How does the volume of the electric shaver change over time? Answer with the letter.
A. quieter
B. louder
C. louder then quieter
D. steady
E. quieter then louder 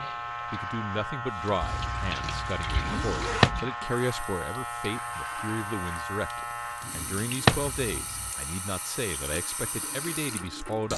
A.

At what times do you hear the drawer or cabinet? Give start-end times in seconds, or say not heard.
2.8-3.6, 6.8-7.7.